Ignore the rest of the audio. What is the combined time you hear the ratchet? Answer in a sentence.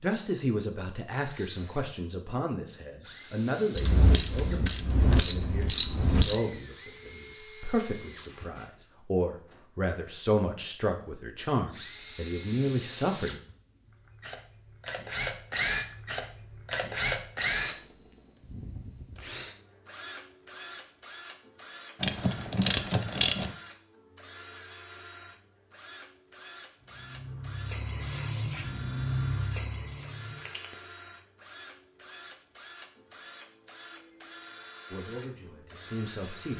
The ratchet can be heard for 4 seconds in total.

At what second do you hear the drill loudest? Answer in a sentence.
The loudest moment of the drill is at 17 seconds.